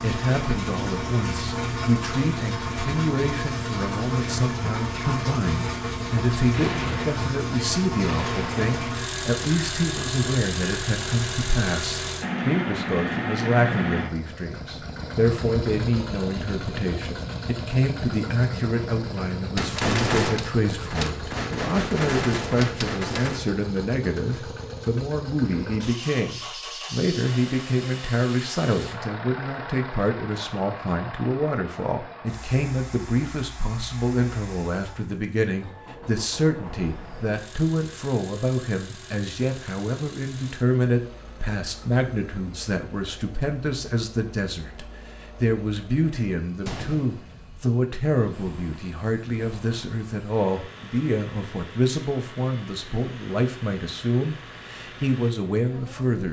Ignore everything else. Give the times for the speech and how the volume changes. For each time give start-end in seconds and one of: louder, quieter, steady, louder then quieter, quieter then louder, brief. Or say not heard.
0.0-56.2 steady.